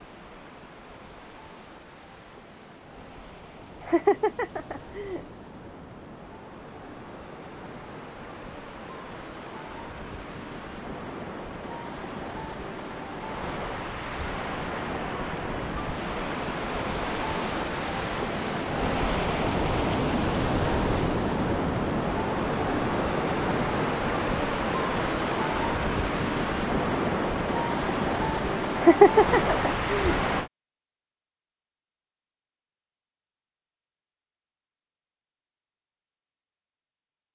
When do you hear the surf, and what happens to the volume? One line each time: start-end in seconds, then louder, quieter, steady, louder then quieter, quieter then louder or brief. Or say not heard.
0.0-30.5 louder.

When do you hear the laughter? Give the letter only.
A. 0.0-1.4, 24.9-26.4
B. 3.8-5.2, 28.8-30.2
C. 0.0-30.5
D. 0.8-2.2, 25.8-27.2
B.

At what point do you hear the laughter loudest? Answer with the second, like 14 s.
29 s.